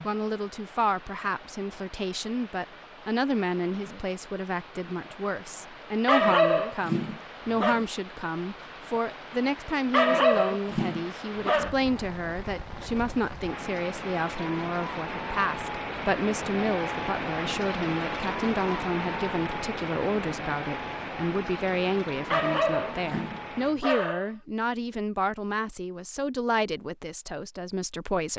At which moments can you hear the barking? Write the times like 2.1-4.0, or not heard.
6.0-7.8, 9.9-11.8, 22.3-24.3.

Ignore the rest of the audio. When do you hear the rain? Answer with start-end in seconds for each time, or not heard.
0.0-23.8.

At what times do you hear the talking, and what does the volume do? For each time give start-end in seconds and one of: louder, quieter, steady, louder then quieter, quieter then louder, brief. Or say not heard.
0.1-28.3 steady.